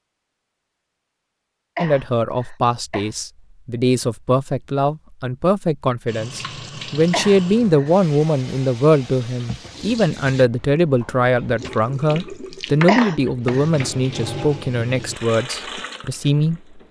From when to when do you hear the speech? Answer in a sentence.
The speech can be heard from 1.8 to 16.8 s.